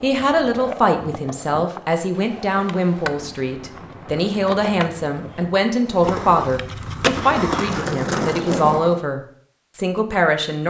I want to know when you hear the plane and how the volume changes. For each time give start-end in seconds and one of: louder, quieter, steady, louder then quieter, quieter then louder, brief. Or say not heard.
not heard.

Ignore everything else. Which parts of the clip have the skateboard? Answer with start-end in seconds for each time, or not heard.
0.0-9.0.